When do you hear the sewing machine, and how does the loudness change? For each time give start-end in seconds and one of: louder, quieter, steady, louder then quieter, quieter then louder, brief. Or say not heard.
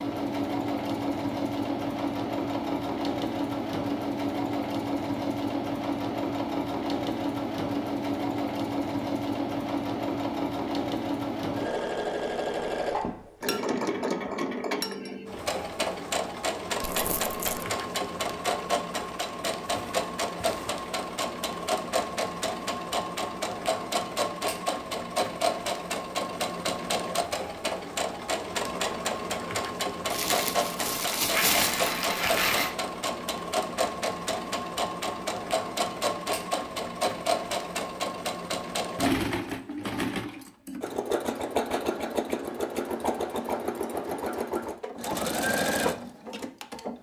0.0-46.9 steady.